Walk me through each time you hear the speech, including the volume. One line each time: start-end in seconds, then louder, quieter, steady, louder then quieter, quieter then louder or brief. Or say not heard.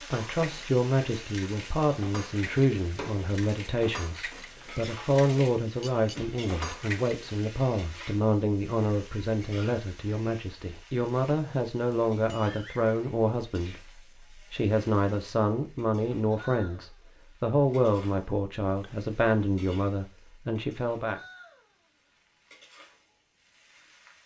0.1-21.2 steady.